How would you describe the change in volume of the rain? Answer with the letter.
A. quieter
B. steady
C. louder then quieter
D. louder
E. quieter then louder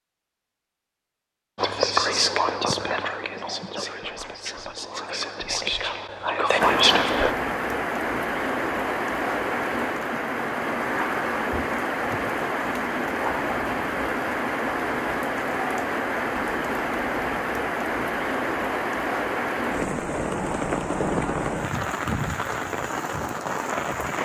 B.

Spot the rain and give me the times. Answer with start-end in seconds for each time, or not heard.
6.5-24.2.